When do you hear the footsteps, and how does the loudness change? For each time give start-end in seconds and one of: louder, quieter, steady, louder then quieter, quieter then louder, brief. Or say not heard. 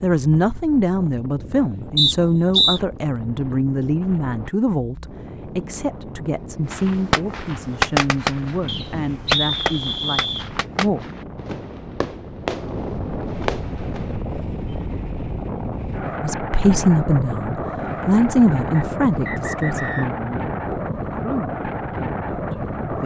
not heard.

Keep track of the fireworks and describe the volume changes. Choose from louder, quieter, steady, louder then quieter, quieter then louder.
quieter then louder.